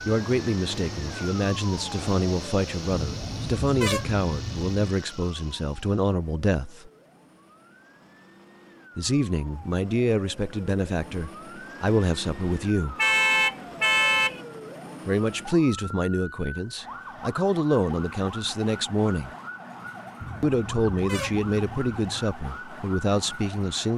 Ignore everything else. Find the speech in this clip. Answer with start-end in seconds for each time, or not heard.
0.1-6.9, 8.9-12.9, 15.1-19.3, 20.4-23.9.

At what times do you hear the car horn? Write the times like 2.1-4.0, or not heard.
2.9-4.9, 12.9-14.4, 20.2-22.2.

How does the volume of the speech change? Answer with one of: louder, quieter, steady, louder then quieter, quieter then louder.
steady.